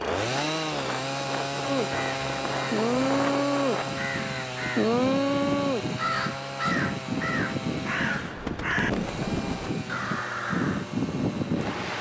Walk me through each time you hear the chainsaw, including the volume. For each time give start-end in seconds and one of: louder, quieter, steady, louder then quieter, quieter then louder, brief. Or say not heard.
0.0-11.9 quieter.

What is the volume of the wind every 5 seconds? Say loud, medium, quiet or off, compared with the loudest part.
medium, loud, loud.